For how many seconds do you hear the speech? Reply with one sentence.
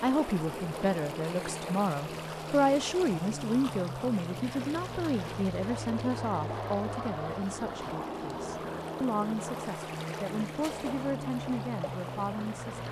The speech can be heard for 13 seconds in total.